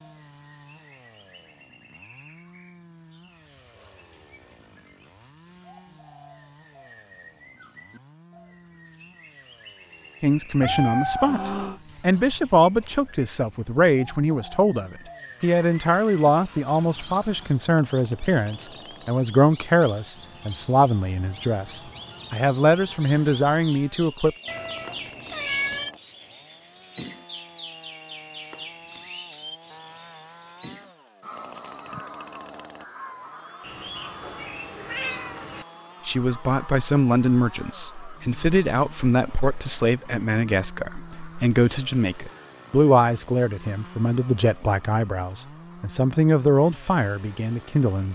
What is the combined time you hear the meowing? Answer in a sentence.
The meowing can be heard for 5 seconds in total.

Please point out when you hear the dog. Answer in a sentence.
You can't hear the dog here.